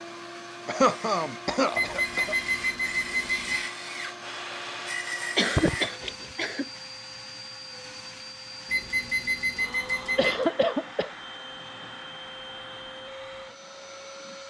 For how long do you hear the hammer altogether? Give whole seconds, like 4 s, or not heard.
not heard.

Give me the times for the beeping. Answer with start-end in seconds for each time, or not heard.
1.8-3.6, 8.7-10.5.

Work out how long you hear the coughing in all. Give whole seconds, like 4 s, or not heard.
4 s.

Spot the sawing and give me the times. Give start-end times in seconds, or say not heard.
0.8-6.3.